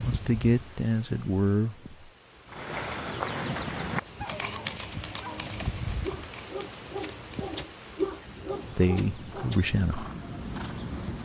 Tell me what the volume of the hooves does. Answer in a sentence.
The volume of the hooves goes down, then up.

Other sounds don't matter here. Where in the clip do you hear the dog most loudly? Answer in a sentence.
The loudest moment of the dog is at 8 seconds.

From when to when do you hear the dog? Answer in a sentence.
You can hear the dog from 4.0 to 9.7 s.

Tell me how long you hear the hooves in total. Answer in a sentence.
You can hear the hooves for 9 seconds altogether.